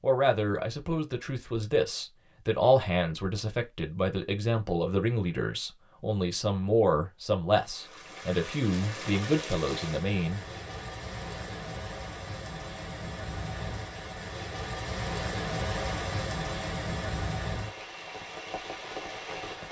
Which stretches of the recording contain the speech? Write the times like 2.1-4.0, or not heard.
0.0-10.4.